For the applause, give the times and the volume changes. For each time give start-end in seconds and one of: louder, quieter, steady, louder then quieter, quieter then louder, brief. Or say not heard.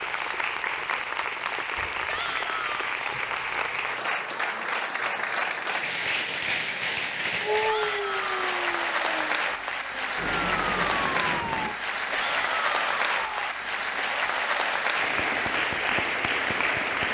0.0-17.0 steady.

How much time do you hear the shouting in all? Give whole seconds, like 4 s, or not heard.
3 s.